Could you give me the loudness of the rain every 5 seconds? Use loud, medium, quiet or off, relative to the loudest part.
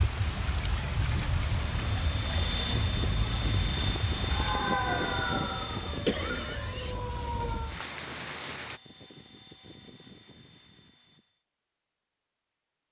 loud, medium, off.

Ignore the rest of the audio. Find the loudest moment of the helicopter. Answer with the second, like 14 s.
5 s.